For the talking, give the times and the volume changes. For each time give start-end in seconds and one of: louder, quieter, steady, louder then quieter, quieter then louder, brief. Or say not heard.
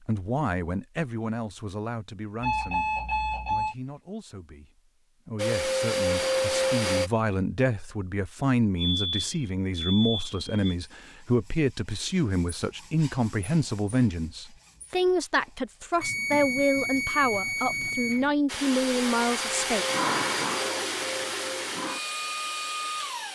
0.1-19.9 louder.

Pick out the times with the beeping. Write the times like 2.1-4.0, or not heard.
2.4-3.8, 8.8-10.8, 16.0-18.3.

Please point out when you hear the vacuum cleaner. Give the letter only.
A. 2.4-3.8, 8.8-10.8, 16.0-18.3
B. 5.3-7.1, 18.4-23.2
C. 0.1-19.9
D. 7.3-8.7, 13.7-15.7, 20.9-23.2
B.